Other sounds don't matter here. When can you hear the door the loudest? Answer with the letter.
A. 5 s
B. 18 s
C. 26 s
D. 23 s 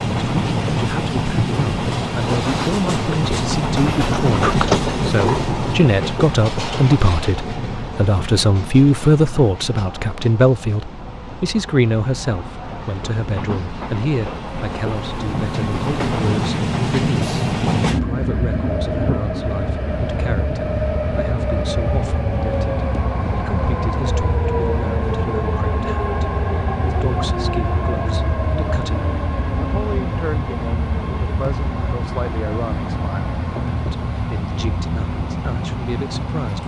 A.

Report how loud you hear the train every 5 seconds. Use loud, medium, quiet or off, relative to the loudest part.
loud, medium, medium, loud, loud, loud, medium, medium.